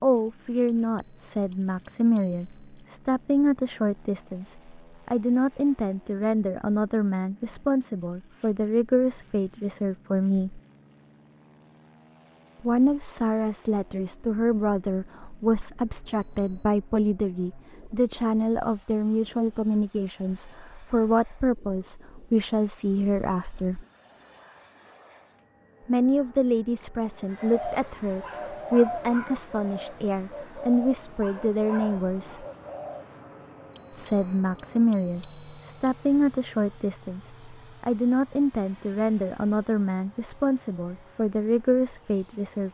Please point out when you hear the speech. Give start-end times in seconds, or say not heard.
0.0-10.6, 12.6-23.9, 25.9-32.5, 33.9-42.6.